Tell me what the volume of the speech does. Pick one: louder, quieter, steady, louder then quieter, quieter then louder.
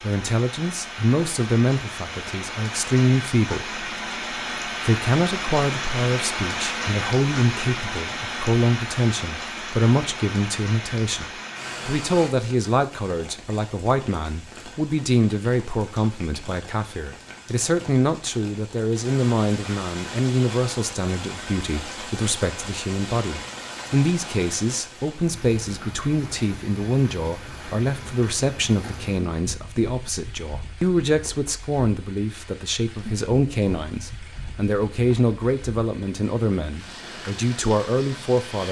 steady.